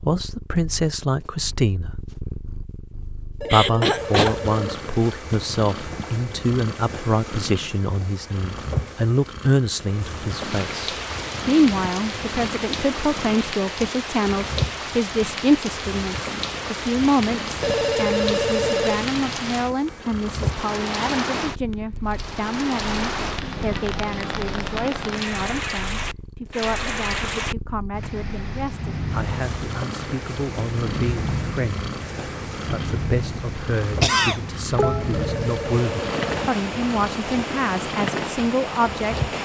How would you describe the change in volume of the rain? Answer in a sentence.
The volume of the rain stays about the same.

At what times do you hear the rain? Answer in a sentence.
The rain can be heard from 10.1 to 39.4 s.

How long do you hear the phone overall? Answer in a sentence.
You can hear the phone for 5 seconds altogether.